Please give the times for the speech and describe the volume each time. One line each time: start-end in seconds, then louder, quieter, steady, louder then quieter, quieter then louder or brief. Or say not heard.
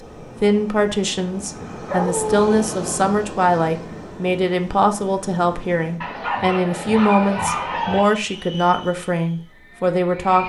0.4-10.4 steady.